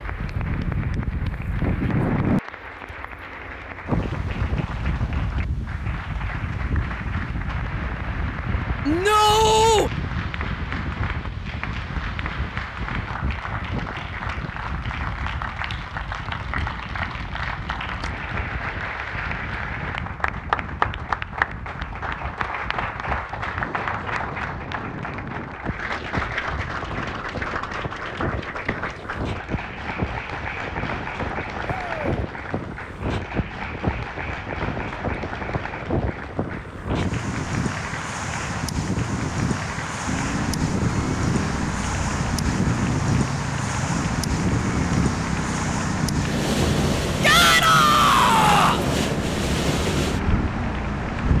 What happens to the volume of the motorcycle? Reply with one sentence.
The loudness of the motorcycle stays about the same.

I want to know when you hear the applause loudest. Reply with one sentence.
The loudest moment of the applause is at 21 seconds.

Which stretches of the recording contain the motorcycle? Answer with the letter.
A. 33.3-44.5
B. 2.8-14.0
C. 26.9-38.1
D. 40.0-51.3
D.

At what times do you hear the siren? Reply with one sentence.
You can't hear the siren here.